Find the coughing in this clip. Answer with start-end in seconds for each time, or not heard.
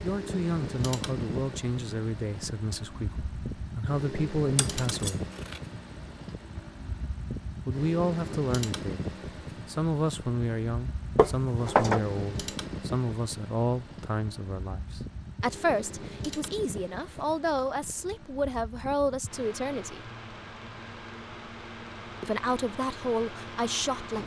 not heard.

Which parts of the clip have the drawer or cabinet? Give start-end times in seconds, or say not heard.
11.2-12.1.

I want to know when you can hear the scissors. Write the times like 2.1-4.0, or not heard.
4.5-5.6.